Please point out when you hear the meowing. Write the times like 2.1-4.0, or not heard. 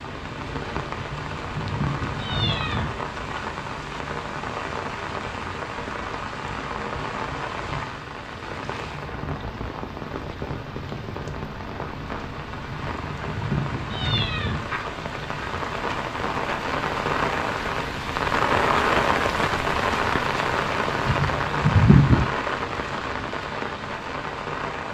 0.9-2.9, 12.7-14.6, 21.1-22.3.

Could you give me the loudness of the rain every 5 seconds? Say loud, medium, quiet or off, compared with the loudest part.
medium, medium, medium, loud, loud.